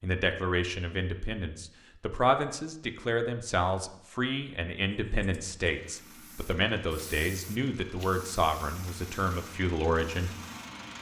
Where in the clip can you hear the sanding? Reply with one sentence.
You can't hear the sanding here.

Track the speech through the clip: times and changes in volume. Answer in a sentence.
You can hear the speech from 0.0 to 10.3 s, at a steady volume.